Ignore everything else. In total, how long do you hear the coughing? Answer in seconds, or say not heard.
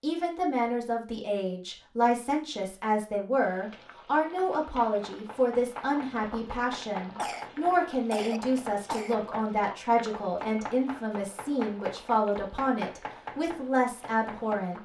2 s.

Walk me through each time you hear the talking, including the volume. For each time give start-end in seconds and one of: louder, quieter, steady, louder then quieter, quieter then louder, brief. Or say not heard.
0.0-14.8 steady.